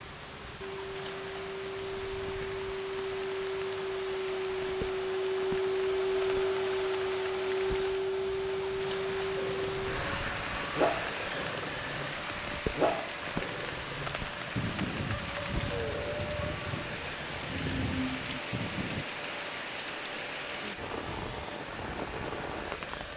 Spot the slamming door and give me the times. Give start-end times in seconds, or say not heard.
not heard.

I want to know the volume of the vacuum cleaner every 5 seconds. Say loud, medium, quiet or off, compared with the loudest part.
medium, loud, medium, quiet, quiet.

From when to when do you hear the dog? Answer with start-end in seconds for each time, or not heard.
9.2-19.1.